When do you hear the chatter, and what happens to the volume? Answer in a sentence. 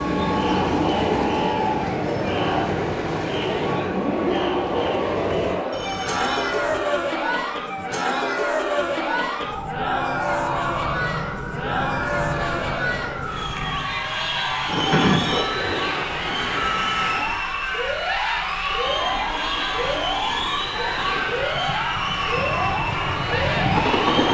The chatter can be heard from 0.0 to 24.2 s, at a steady volume.